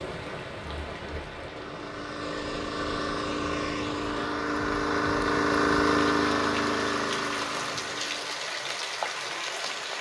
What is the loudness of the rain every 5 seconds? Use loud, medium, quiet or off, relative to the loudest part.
medium, loud.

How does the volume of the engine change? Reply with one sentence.
The loudness of the engine goes up, then down.